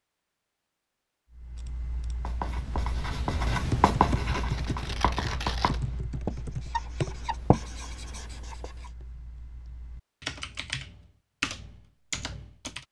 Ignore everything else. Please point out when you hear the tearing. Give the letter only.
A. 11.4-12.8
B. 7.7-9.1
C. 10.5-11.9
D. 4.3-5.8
D.